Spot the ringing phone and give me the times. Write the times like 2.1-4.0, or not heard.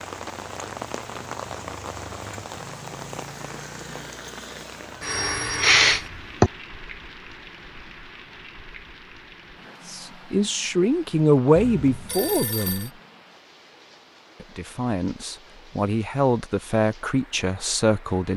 5.0-6.1, 11.6-12.9.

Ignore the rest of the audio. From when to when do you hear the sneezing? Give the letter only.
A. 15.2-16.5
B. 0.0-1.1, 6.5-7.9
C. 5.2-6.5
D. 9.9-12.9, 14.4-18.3
C.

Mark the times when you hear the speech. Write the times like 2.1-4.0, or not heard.
9.9-12.9, 14.4-18.3.